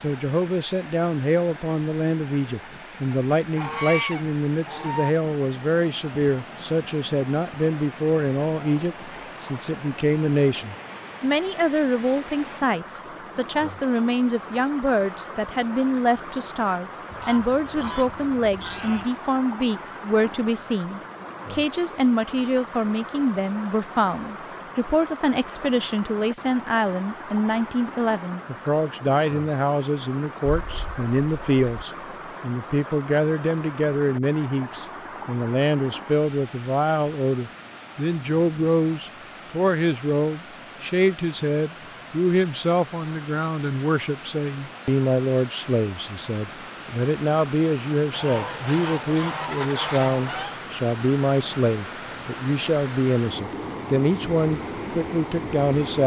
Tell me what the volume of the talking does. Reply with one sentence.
The loudness of the talking stays about the same.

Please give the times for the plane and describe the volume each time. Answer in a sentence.
You can't hear the plane here.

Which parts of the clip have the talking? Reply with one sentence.
You can hear the talking from 0.0 to 56.0 s.